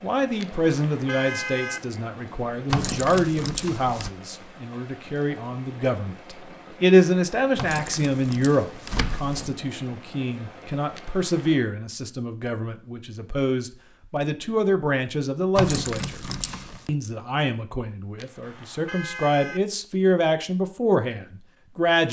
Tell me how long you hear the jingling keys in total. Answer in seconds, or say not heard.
5 s.